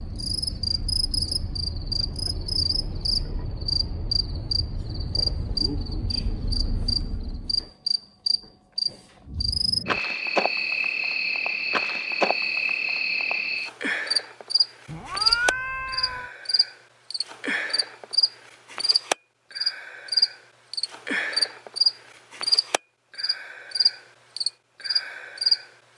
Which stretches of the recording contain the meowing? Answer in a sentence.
The meowing can be heard from 14.8 to 16.3 s.